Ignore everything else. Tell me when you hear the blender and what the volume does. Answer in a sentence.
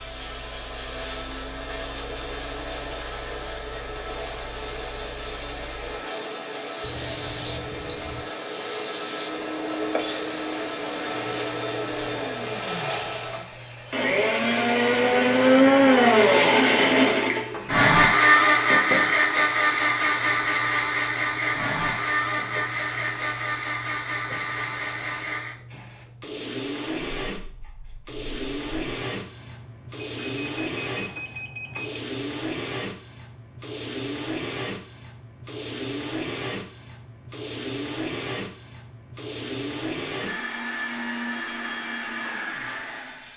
You can hear the blender from 0.0 to 43.3 s, getting louder then quieter.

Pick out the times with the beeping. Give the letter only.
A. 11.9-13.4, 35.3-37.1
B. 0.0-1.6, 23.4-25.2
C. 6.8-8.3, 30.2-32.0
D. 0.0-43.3
C.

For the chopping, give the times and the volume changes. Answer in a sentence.
You can't hear the chopping here.